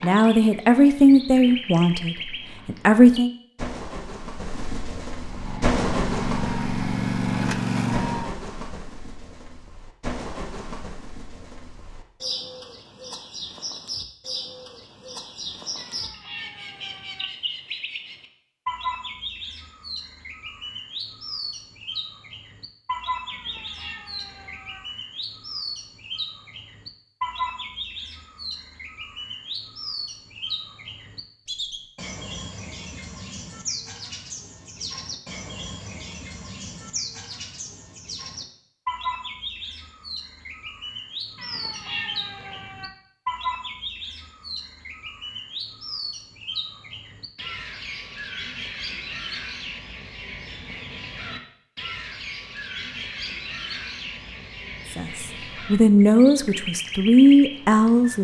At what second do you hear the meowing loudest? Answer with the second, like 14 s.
42 s.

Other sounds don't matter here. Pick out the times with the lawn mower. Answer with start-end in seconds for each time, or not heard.
5.2-8.4.